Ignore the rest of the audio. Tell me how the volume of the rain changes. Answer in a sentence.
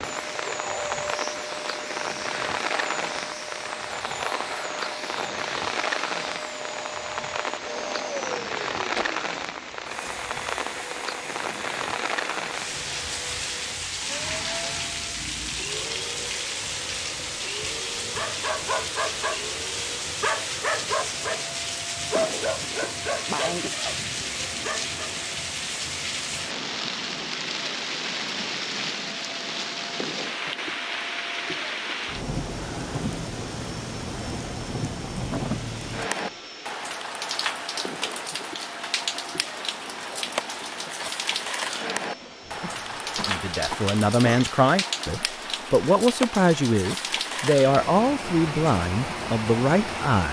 The volume of the rain stays about the same.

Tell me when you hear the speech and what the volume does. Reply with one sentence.
The speech can be heard from 43.1 to 50.2 s, at a steady volume.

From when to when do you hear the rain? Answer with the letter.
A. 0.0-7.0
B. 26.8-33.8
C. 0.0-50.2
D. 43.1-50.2
C.